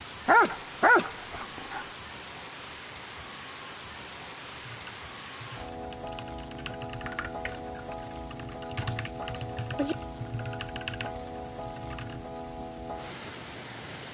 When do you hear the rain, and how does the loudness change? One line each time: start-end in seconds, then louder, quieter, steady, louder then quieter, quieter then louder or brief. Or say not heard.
0.0-14.0 steady.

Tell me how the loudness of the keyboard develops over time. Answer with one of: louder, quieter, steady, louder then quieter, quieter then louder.
louder.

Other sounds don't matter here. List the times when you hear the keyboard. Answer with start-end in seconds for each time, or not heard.
4.5-12.2.